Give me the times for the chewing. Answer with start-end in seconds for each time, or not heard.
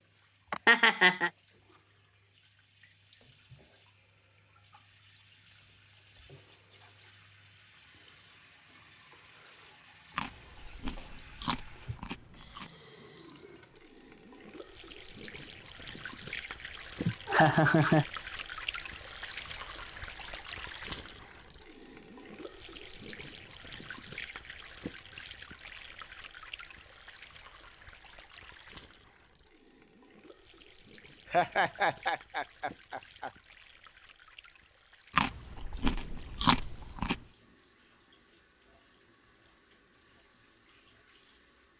10.2-12.7, 35.1-37.2.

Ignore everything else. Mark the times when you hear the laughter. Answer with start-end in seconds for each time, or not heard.
0.5-1.3, 17.1-18.1, 31.3-33.3.